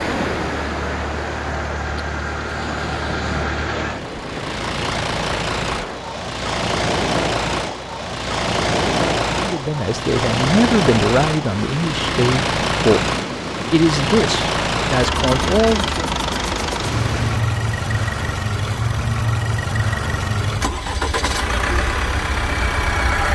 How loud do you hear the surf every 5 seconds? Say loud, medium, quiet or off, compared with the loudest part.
loud, loud, loud, loud, off.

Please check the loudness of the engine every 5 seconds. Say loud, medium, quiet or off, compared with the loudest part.
medium, loud, loud, loud, loud.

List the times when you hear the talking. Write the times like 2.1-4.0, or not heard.
9.3-13.1, 13.7-16.1.